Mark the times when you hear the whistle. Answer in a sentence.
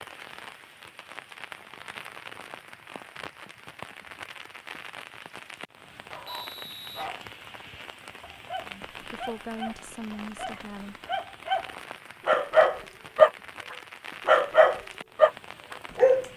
The whistle can be heard from 6.2 to 7.6 s.